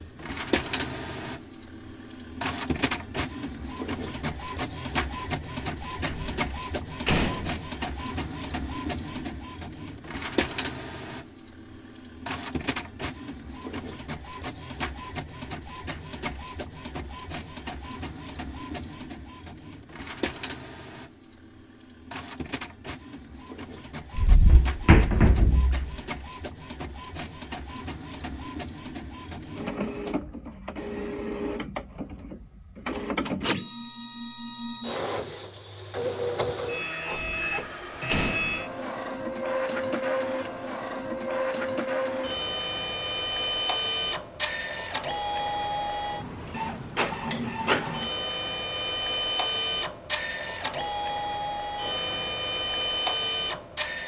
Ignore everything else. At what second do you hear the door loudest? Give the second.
25 s.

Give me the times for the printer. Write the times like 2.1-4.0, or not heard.
0.0-54.0.